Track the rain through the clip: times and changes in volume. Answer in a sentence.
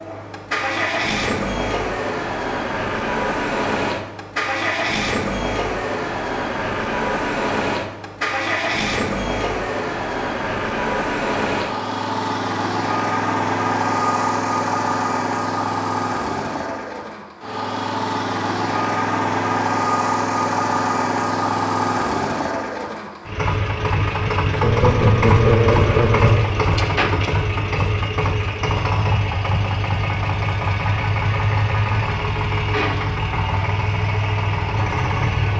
The rain can't be heard in this clip.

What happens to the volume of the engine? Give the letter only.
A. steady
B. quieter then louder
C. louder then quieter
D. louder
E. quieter
A.